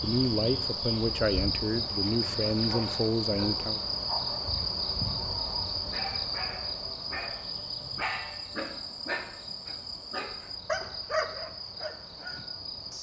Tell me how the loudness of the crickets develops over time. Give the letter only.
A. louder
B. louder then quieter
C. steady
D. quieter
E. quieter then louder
D.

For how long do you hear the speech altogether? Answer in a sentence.
The speech can be heard for 4 seconds in total.